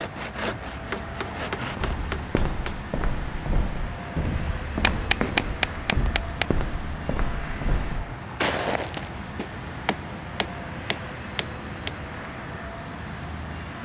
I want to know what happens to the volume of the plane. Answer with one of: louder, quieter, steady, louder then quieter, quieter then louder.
steady.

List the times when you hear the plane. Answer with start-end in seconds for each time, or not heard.
0.0-13.8.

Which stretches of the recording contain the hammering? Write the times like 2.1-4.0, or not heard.
0.3-2.8, 4.9-6.5, 9.3-11.9.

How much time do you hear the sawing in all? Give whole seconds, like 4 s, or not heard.
2 s.